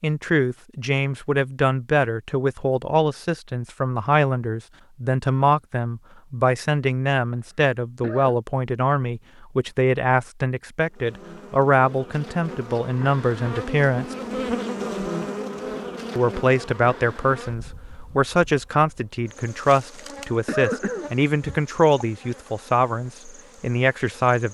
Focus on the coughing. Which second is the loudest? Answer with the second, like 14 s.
21 s.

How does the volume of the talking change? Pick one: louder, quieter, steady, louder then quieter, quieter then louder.
steady.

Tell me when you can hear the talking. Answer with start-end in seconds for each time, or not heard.
0.0-14.2, 16.1-24.4.